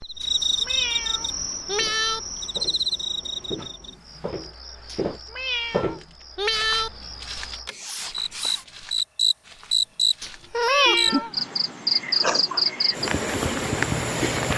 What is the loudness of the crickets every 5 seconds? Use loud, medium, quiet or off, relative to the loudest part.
medium, medium, loud.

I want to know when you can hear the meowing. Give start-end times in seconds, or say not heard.
0.2-2.2, 4.9-6.9, 10.2-11.3.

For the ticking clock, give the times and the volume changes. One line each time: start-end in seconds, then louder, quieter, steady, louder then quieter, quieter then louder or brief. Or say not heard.
not heard.